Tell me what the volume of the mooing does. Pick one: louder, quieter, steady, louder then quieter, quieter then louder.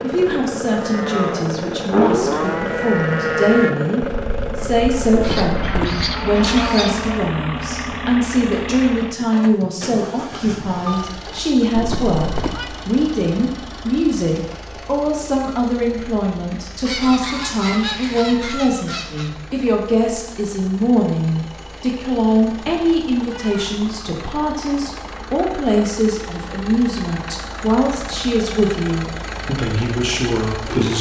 quieter then louder.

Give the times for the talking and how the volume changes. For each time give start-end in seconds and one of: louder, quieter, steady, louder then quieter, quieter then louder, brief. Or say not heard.
0.0-30.9 steady.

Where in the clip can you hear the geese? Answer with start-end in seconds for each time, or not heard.
5.2-7.2, 16.8-19.3.